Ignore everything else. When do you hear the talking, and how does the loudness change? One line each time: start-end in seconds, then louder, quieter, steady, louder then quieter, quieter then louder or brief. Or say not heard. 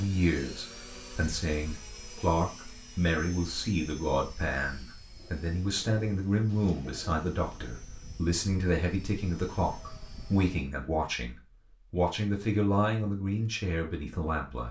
0.0-14.6 steady.